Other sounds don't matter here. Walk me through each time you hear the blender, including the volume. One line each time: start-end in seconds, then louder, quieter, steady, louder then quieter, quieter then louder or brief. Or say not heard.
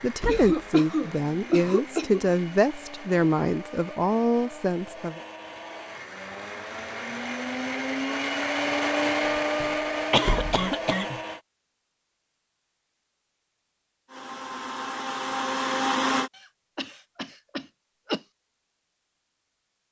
0.0-11.4 louder
14.1-16.3 brief.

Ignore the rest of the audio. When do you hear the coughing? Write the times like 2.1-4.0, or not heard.
0.2-2.2, 9.6-11.2, 16.8-18.2.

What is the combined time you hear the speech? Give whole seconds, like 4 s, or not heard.
5 s.